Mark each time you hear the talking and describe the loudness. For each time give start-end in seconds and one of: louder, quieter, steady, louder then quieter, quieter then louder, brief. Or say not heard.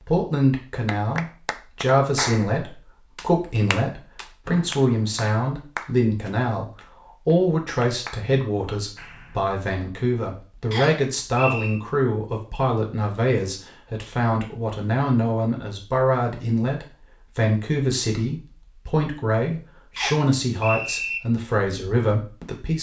0.1-22.7 steady.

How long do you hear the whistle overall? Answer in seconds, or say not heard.
3 s.